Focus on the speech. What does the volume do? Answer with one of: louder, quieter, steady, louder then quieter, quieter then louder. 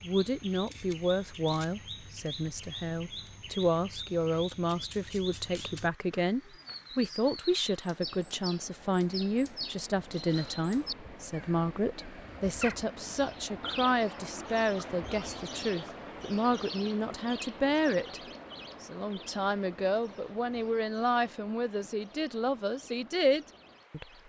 steady.